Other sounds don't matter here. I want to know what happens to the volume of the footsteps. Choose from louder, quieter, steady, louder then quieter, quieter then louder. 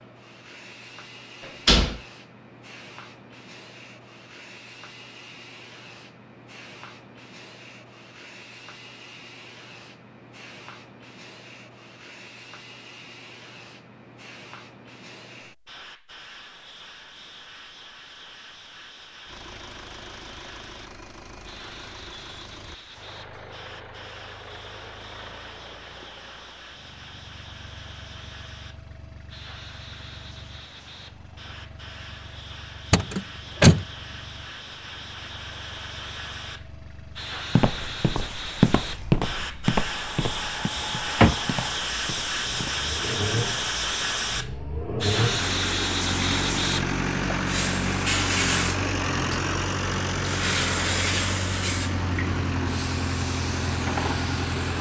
quieter.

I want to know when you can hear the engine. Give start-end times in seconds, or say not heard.
19.2-54.7.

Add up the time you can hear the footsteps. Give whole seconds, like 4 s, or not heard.
5 s.